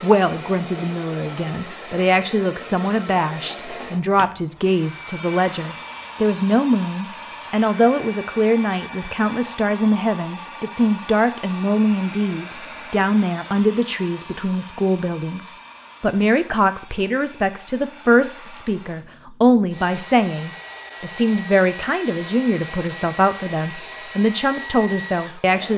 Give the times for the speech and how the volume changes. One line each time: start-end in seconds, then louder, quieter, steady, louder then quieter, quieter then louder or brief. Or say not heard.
0.0-25.7 steady.